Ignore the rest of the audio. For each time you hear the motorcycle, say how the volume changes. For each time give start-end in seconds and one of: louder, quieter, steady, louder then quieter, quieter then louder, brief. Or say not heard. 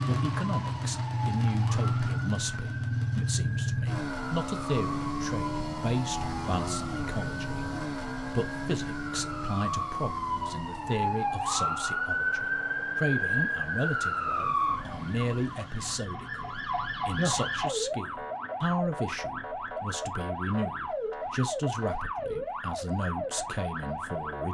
0.0-15.8 quieter.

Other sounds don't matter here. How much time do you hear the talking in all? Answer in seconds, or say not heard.
24 s.